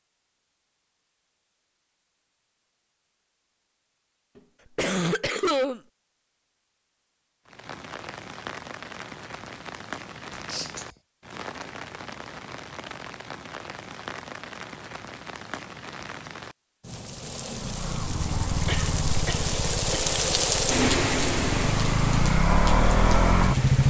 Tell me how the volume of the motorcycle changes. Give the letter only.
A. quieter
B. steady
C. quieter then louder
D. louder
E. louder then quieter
C.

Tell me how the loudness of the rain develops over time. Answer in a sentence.
The volume of the rain goes up.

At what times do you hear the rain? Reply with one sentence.
The rain can be heard from 7.5 to 23.8 s.